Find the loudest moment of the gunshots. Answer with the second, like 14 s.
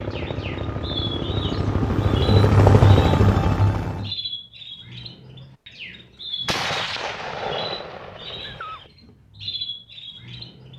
7 s.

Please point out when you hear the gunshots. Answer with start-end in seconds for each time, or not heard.
6.5-8.9.